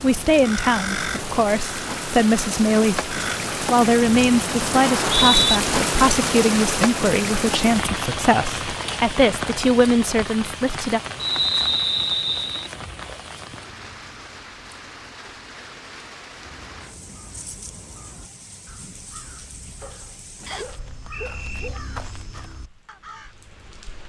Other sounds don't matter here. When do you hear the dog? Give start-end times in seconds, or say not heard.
19.8-21.8.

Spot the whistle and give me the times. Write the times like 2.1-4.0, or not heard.
4.8-5.6, 11.2-12.7, 20.4-21.7.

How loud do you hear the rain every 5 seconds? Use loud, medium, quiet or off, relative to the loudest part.
loud, loud, medium, quiet, quiet.